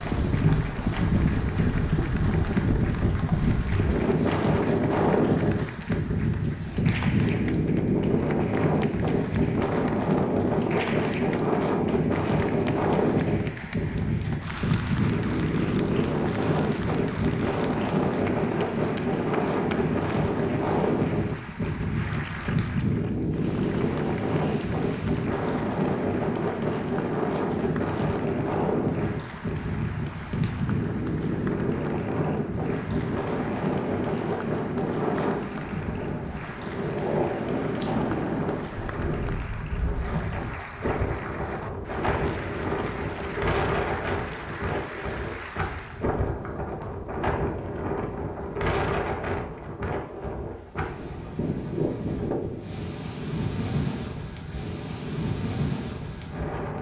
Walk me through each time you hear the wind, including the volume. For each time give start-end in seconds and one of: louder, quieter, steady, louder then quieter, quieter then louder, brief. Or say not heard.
0.0-56.7 quieter.